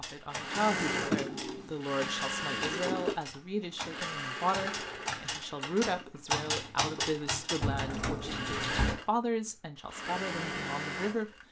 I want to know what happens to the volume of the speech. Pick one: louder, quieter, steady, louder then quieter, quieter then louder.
steady.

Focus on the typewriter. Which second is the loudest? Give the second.
6 s.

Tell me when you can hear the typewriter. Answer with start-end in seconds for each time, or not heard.
0.0-8.8.